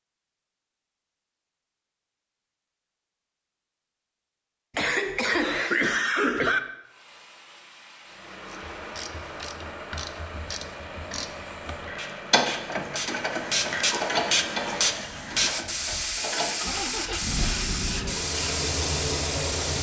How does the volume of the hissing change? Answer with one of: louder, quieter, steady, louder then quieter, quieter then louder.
louder.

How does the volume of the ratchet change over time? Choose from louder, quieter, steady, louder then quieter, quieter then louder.
louder then quieter.